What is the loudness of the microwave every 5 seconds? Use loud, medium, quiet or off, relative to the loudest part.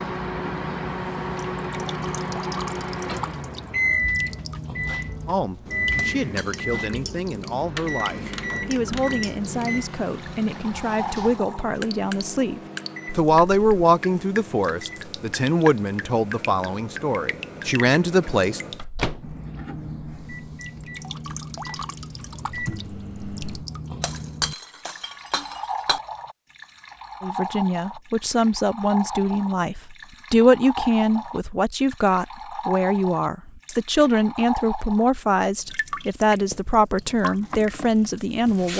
loud, loud, medium, medium, medium, off, off, off.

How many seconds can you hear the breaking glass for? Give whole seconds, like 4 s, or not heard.
3 s.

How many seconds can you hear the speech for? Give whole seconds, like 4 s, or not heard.
25 s.